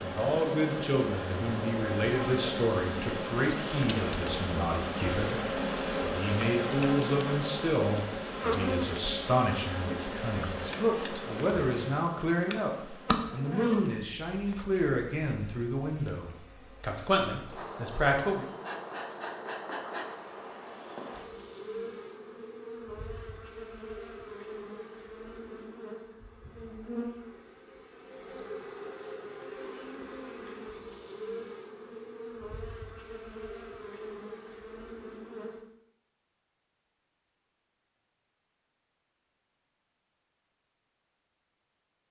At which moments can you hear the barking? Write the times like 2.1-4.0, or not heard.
not heard.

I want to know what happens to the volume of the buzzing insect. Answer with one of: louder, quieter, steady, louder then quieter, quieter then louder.
quieter.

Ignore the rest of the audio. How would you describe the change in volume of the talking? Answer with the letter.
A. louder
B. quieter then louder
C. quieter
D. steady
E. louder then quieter
D.